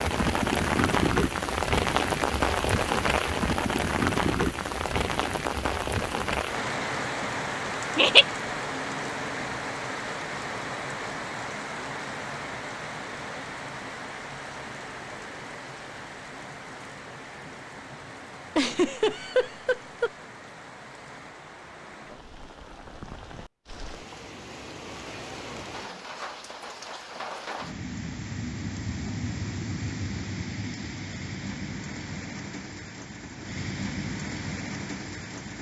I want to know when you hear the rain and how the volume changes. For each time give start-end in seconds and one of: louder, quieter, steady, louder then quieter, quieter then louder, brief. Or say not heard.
0.0-35.5 quieter then louder.